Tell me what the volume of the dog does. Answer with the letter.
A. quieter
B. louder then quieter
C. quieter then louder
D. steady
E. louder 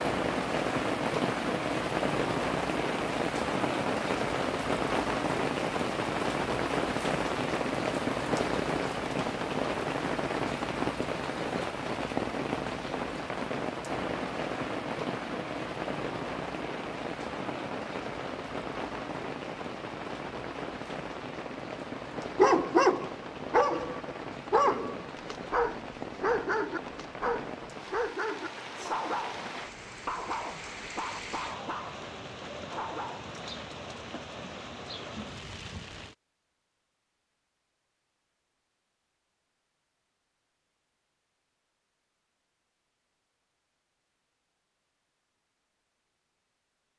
A.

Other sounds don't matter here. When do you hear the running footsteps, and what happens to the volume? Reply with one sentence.
You can't hear the running footsteps here.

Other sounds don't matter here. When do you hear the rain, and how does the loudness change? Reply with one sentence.
You can hear the rain from 0.0 to 36.1 s, getting quieter.